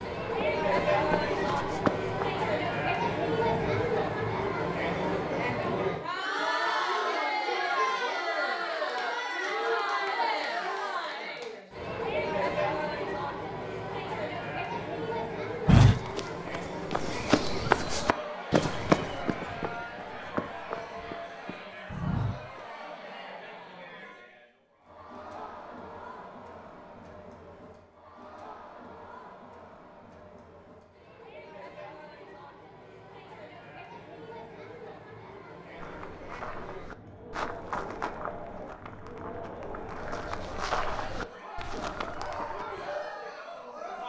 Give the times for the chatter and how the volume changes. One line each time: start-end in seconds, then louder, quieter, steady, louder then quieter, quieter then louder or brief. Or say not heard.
0.0-44.0 quieter then louder.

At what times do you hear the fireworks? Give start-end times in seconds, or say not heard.
not heard.